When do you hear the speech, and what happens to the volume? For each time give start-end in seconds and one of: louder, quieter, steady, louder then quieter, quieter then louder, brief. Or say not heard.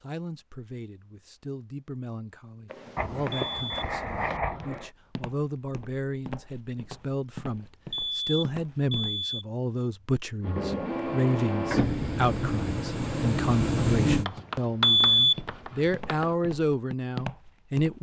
0.0-17.9 louder.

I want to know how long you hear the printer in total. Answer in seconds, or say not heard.
4 s.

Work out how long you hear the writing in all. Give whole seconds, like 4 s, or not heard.
4 s.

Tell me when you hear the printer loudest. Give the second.
14 s.